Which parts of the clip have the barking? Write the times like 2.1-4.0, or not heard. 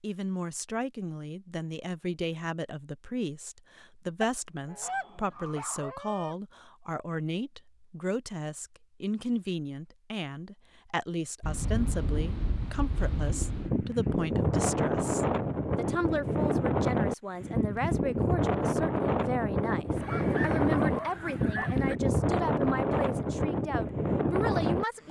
4.8-6.0, 20.0-21.8.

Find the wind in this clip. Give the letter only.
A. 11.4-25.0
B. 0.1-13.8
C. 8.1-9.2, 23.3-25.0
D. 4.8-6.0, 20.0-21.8
A.